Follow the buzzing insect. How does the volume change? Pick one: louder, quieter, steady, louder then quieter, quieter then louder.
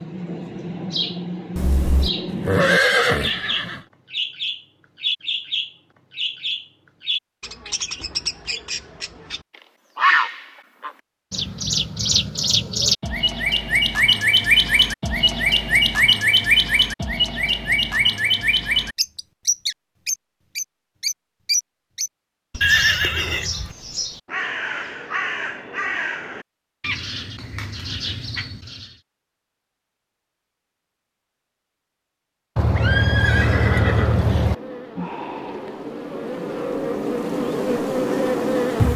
louder.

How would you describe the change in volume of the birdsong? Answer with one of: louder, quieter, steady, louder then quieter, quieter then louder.
louder then quieter.